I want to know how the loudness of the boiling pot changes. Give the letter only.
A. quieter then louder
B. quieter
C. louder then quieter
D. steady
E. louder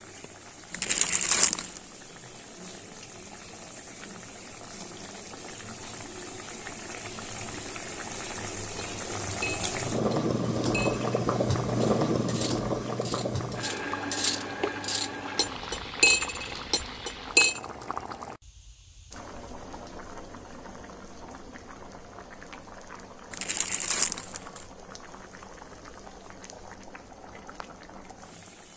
C.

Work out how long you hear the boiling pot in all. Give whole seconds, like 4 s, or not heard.
29 s.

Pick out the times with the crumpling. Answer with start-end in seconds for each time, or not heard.
0.7-1.8, 23.3-24.6.